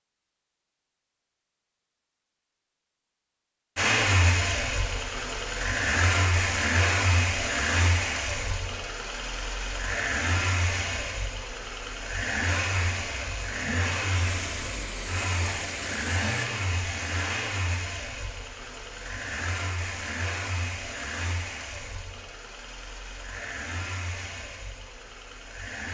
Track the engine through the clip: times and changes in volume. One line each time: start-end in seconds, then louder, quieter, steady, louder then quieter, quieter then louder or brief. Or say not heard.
3.8-25.8 quieter.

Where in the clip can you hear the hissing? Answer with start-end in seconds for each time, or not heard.
14.2-16.5.